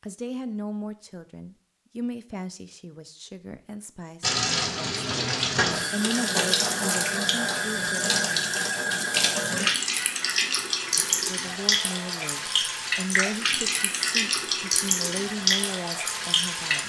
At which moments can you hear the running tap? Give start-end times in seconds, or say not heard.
4.2-16.8.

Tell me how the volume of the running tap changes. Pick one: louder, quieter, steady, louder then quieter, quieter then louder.
steady.